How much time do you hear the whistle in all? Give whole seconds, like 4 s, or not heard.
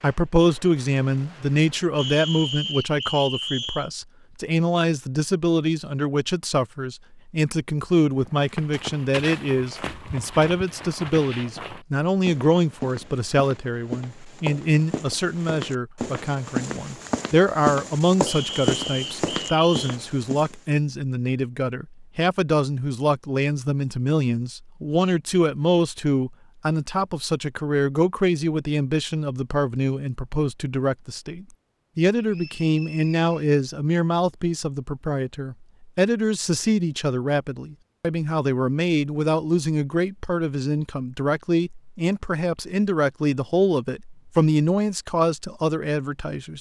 5 s.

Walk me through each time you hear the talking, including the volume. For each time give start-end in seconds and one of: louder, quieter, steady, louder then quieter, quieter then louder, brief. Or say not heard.
0.0-46.5 steady.